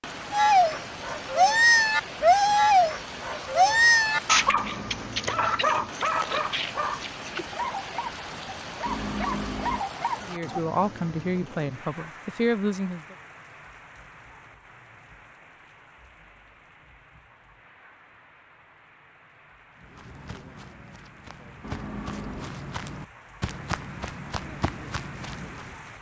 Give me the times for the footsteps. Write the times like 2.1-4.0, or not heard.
19.8-25.9.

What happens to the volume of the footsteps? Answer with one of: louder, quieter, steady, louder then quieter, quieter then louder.
louder.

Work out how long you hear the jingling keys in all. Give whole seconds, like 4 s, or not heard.
3 s.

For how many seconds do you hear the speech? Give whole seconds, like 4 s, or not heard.
3 s.